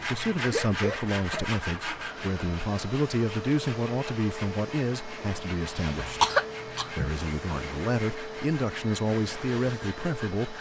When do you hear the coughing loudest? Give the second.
6 s.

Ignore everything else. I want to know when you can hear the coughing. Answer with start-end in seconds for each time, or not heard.
0.4-1.4, 6.0-7.1.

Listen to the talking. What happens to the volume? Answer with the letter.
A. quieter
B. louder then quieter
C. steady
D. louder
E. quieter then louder
C.